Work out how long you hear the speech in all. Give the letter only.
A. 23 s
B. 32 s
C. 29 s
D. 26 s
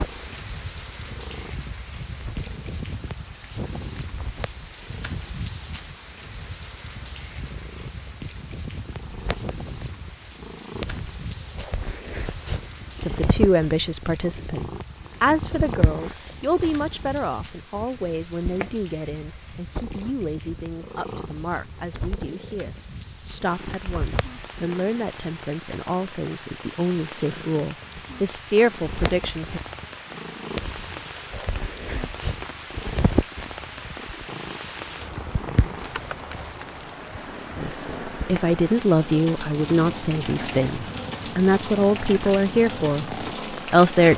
A.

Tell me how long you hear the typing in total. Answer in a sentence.
The typing can't be heard in this clip.